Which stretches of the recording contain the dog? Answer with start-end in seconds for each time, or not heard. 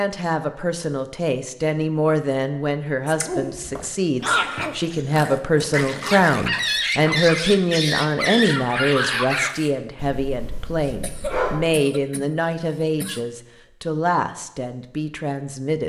3.0-11.8.